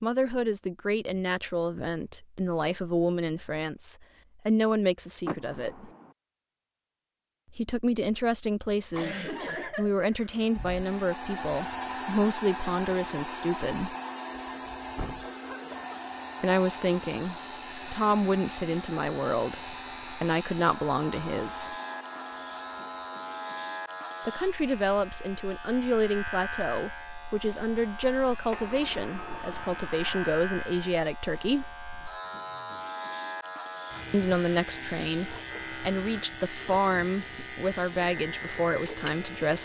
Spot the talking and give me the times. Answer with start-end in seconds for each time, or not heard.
0.0-5.9, 7.5-13.9, 16.4-21.8, 24.2-31.8, 34.1-39.6.